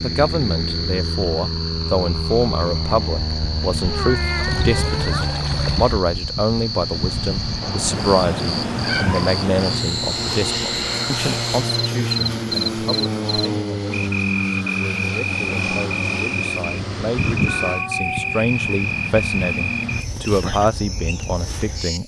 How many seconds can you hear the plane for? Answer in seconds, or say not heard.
20 s.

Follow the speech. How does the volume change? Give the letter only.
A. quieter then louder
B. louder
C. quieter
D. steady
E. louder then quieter
A.